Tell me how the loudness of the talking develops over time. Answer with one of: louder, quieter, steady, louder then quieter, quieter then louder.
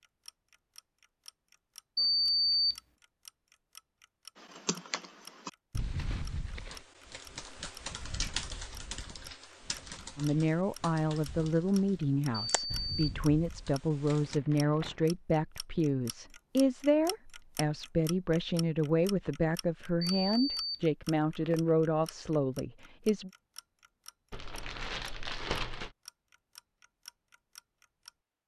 steady.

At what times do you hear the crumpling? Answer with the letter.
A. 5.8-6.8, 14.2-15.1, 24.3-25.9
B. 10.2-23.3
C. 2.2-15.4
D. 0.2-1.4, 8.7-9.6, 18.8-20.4
A.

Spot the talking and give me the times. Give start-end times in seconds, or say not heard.
10.2-23.3.